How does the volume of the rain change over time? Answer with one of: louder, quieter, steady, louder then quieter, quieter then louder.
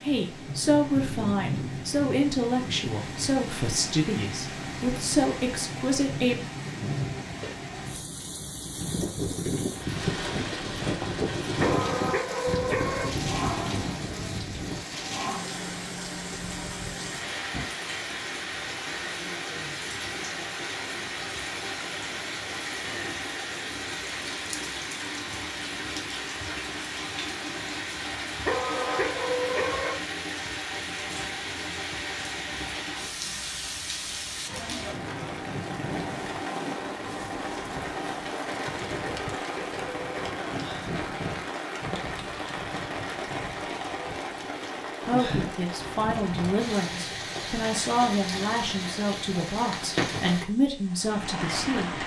steady.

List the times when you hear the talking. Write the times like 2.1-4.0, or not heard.
0.0-6.3, 45.0-52.0.